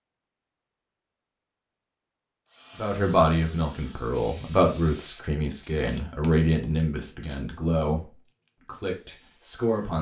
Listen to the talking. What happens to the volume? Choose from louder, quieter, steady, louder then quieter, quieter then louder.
quieter.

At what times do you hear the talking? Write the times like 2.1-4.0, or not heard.
2.8-9.9.